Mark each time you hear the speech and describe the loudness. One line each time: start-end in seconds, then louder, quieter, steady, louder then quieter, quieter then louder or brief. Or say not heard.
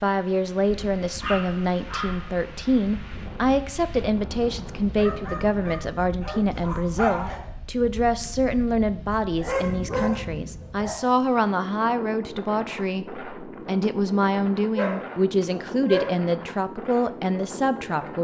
0.0-18.1 steady.